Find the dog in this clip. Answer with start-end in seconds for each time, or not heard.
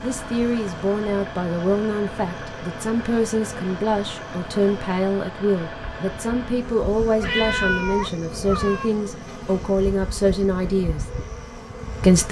not heard.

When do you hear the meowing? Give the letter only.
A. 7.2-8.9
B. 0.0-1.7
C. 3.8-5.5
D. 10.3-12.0
A.